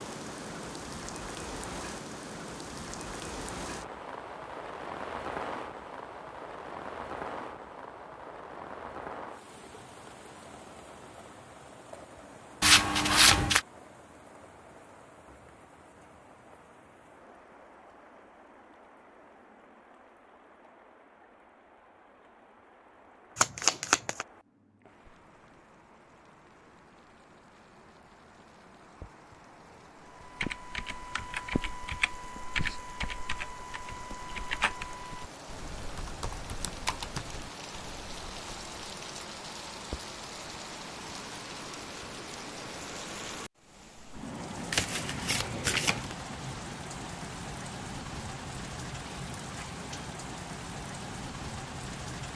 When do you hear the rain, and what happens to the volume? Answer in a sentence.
The rain can be heard from 0.0 to 52.3 s, getting quieter then louder.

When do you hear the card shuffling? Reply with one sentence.
The card shuffling can be heard from 12.6 to 13.6 s, from 23.4 to 24.2 s and from 44.7 to 46.1 s.